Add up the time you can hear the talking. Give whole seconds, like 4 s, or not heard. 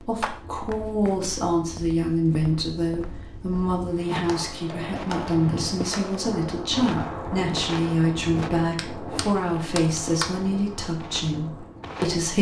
12 s.